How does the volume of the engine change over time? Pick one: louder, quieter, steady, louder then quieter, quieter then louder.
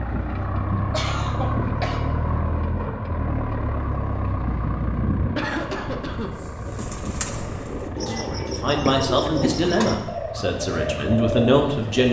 quieter.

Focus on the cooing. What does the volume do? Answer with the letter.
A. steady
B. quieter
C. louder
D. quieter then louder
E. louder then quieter
C.